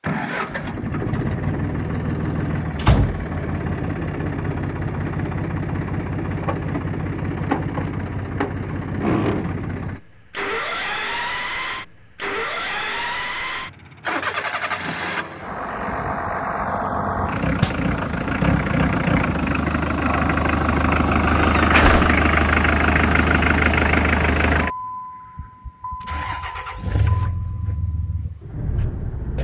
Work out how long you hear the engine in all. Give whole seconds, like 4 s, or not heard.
29 s.